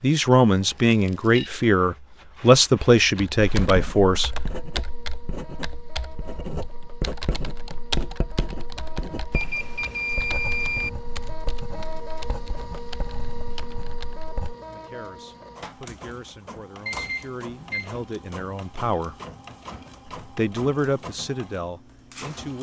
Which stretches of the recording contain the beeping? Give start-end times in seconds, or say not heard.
0.7-1.5, 9.3-10.9, 16.9-17.9.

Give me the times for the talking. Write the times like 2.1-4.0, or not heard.
0.0-4.3, 14.7-19.1, 20.4-22.5.